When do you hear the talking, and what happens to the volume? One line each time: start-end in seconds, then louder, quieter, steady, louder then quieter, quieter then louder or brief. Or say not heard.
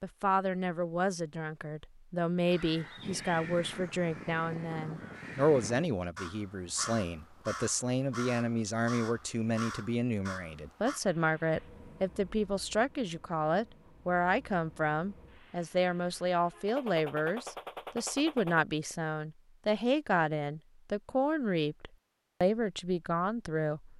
0.0-23.9 steady.